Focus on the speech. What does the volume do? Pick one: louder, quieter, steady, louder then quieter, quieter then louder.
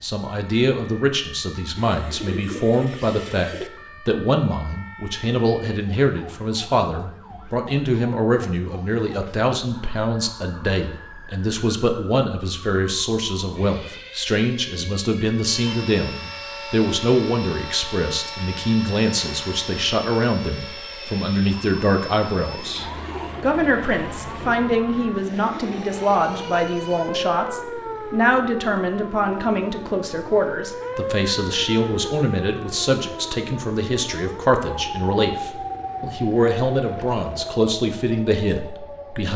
steady.